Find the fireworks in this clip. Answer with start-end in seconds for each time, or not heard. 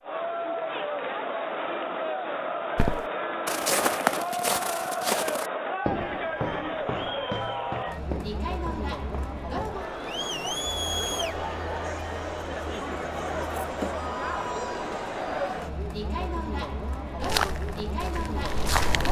not heard.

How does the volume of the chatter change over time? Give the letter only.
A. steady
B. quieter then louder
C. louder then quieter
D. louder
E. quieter
A.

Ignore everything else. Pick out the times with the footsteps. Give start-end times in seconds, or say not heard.
2.8-9.8, 17.2-19.0.